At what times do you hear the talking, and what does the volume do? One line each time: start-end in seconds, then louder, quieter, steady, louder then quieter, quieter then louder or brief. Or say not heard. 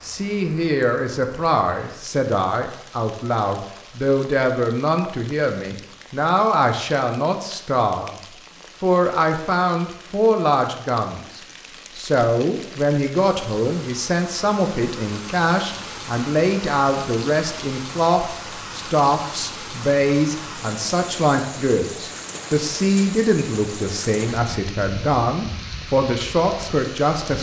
0.0-8.2 steady
8.8-27.3 steady.